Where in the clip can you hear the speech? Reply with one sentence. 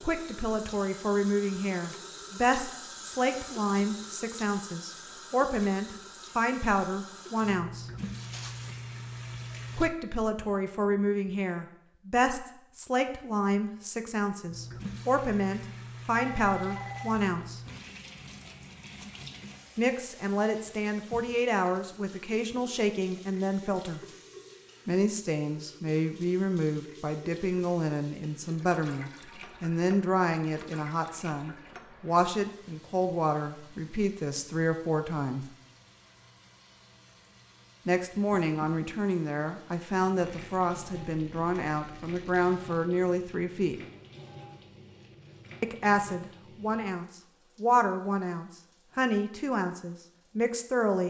You can hear the speech from 0.0 to 7.8 s, from 9.8 to 17.6 s, from 19.8 to 24.0 s, from 24.9 to 35.5 s, from 37.9 to 43.8 s and from 45.6 to 51.0 s.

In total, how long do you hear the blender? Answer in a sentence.
You can't hear the blender here.